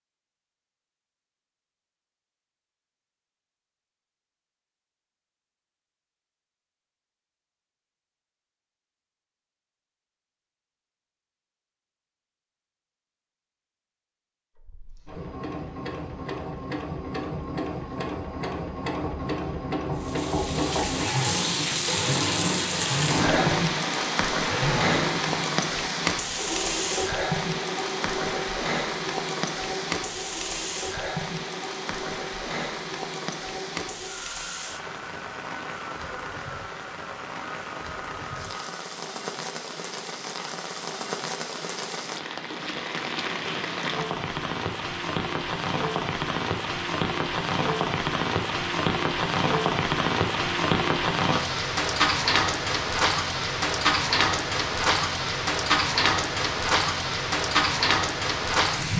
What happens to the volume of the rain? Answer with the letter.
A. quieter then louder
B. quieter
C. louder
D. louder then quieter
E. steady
A.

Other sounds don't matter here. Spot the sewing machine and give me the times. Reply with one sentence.
The sewing machine can be heard from 14.6 to 38.9 s.